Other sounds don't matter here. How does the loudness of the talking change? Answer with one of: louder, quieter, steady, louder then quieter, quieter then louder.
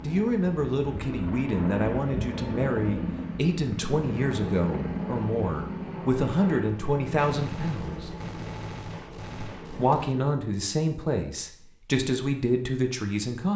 steady.